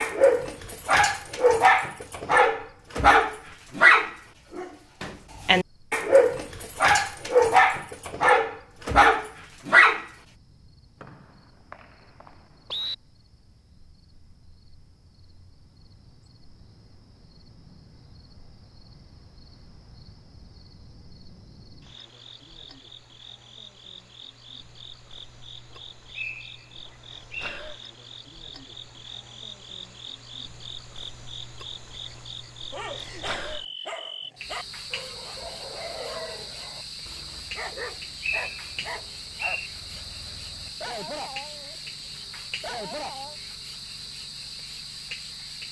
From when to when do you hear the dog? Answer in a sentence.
You can hear the dog from 0.0 to 10.1 s and from 32.7 to 43.4 s.